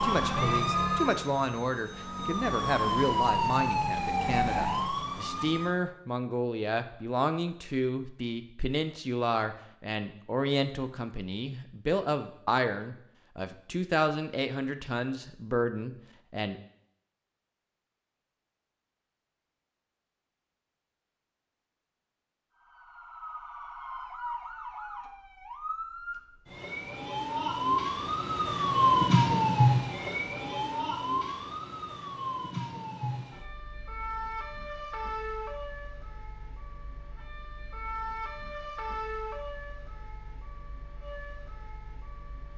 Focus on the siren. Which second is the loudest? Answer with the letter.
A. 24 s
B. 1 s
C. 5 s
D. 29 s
D.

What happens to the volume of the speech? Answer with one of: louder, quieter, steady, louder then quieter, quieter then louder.
steady.